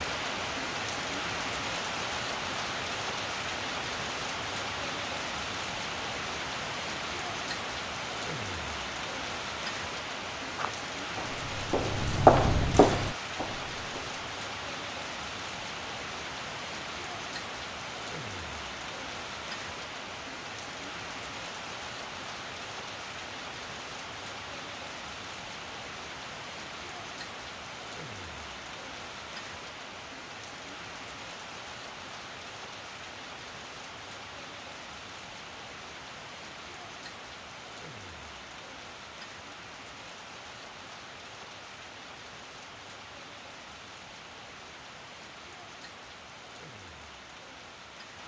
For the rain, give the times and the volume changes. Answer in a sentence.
The rain can be heard from 0.0 to 48.2 s, getting quieter.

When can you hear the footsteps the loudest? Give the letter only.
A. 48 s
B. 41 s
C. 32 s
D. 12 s
D.